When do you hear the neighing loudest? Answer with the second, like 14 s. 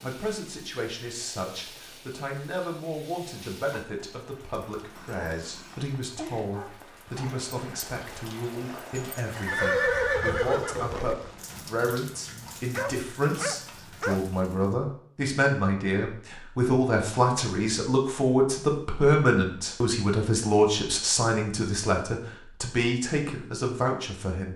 10 s.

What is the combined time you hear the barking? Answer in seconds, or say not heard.
4 s.